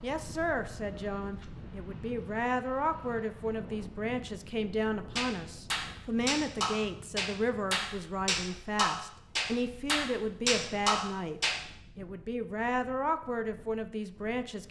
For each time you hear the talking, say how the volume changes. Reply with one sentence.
The talking can be heard from 0.0 to 14.6 s, at a steady volume.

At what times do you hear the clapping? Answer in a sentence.
You can hear the clapping from 5.2 to 11.6 s.